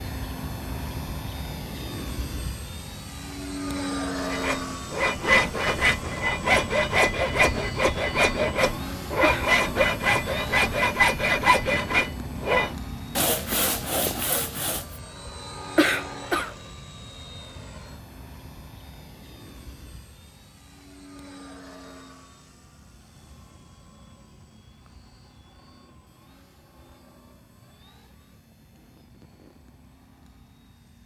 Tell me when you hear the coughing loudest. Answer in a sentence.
The loudest moment of the coughing is at 16 seconds.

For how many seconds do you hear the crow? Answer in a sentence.
You can't hear the crow here.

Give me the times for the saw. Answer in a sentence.
You can hear the saw from 4.2 to 14.9 s.